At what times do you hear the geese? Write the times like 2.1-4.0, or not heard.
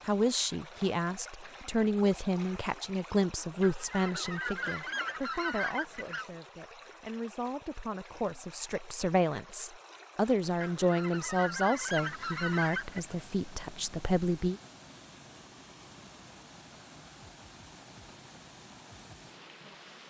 3.6-6.3, 10.6-13.2.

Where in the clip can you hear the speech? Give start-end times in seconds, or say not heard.
0.1-14.6.